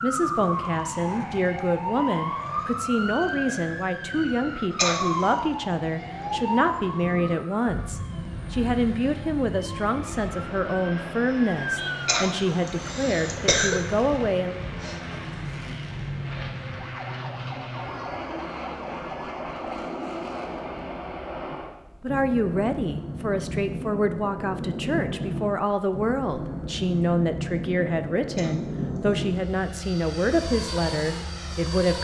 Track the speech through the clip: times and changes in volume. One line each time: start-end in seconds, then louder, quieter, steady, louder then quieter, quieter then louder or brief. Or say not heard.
0.0-14.6 steady
21.5-32.0 steady.